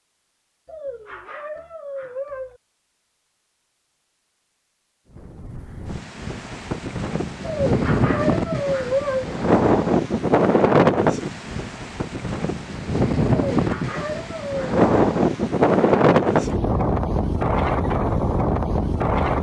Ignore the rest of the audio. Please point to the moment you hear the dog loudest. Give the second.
9 s.